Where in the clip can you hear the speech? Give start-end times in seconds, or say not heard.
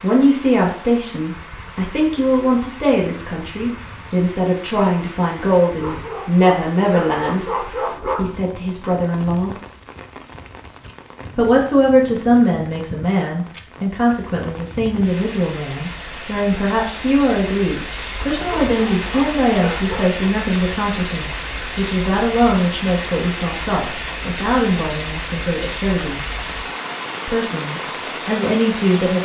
0.0-7.5, 8.2-9.6, 11.3-26.4, 27.2-29.1.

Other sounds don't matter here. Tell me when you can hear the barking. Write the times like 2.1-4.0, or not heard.
5.7-8.5, 18.4-20.1.